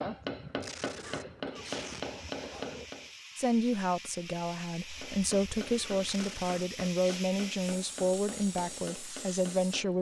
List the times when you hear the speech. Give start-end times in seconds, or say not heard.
3.4-9.9.